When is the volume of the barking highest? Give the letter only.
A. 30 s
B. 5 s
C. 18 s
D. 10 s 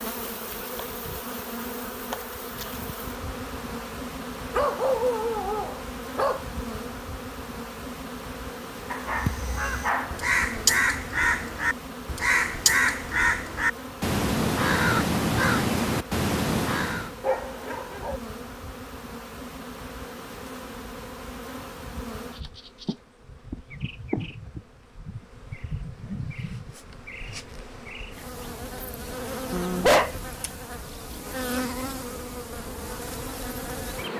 A.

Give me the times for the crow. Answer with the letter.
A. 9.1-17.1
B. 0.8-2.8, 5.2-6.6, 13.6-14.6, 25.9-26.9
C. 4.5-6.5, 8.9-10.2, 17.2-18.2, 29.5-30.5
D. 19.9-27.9
A.